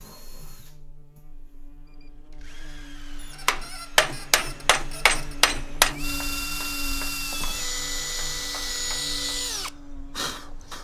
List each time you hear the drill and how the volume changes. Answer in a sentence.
You can hear the drill from 0.0 to 10.7 s, getting louder.